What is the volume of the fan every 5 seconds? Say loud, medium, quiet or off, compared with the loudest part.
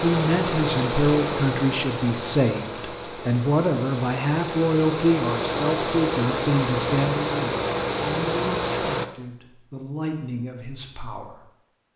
loud, loud, off.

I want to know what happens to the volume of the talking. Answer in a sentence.
The volume of the talking goes down.